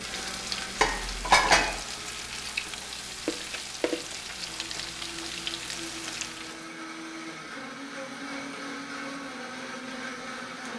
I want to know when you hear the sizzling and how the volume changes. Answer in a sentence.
The sizzling can be heard from 0.0 to 6.7 s, at a steady volume.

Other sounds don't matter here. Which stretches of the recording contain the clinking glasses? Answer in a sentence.
The clinking glasses can be heard from 0.8 to 1.8 s.